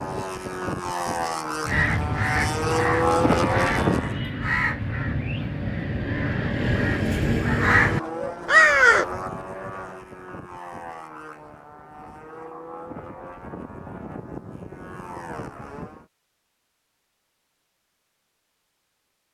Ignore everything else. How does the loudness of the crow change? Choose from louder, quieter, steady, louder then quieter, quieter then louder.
louder.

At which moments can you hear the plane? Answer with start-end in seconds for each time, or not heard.
0.0-4.2, 7.5-16.1.